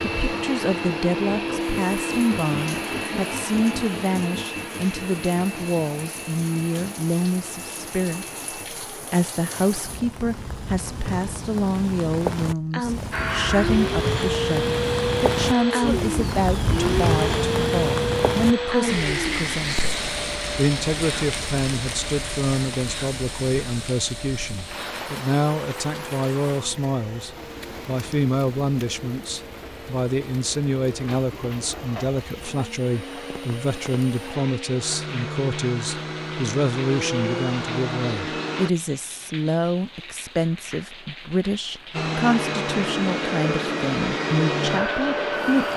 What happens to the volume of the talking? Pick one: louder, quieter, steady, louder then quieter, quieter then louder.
steady.